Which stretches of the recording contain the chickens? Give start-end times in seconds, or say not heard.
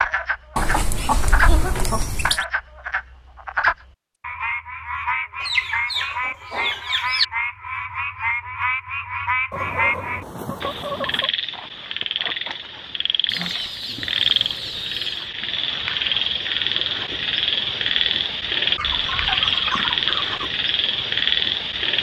0.6-2.5, 5.4-7.2, 9.5-11.3, 13.2-15.3, 18.8-20.4.